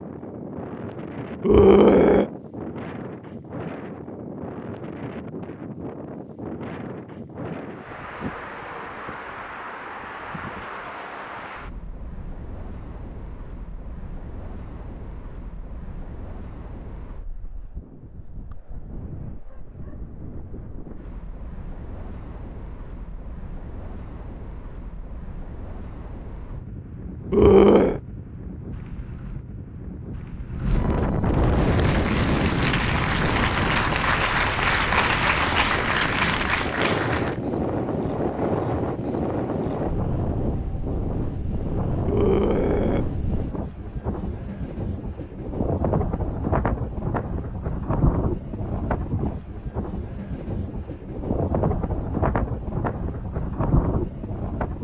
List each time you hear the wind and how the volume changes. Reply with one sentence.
The wind can be heard from 0.0 to 54.7 s, getting quieter then louder.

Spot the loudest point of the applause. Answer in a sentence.
The volume of the applause peaks at 35 seconds.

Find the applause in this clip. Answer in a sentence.
You can hear the applause from 31.4 to 37.4 s.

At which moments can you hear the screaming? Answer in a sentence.
You can hear the screaming from 1.4 to 2.3 s, from 27.3 to 28.0 s and from 42.0 to 43.0 s.